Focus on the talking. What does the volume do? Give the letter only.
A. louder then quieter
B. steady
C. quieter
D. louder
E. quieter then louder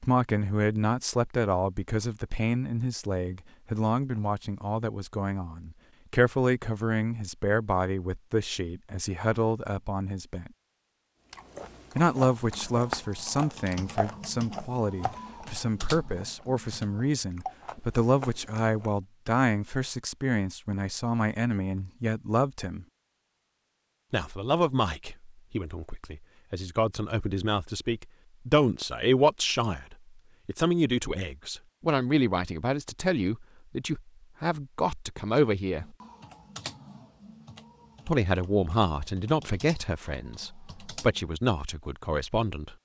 B.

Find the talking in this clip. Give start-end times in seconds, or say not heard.
0.0-10.5, 11.9-22.9, 24.1-35.9, 38.0-42.7.